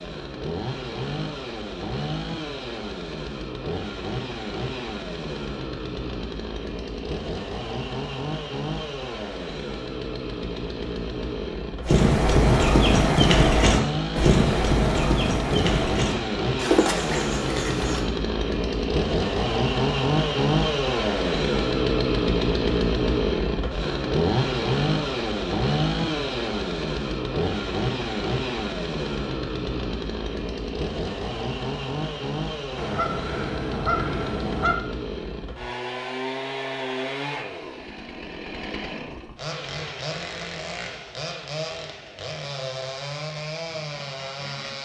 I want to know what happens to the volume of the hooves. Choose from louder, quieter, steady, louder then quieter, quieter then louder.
quieter.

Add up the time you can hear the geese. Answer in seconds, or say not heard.
2 s.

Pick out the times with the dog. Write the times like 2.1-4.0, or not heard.
not heard.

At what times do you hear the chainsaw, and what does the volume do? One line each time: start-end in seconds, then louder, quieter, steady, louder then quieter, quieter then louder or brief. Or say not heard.
0.0-44.8 louder then quieter.